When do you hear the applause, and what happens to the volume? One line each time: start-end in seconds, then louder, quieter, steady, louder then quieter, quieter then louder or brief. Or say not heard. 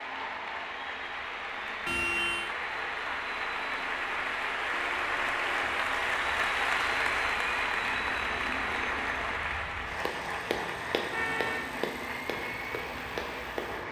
0.0-13.8 louder then quieter.